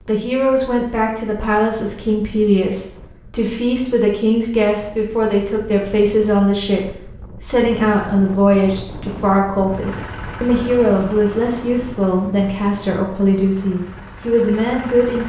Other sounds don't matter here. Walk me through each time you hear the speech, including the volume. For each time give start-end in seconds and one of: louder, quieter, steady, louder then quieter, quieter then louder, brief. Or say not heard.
0.1-15.2 steady.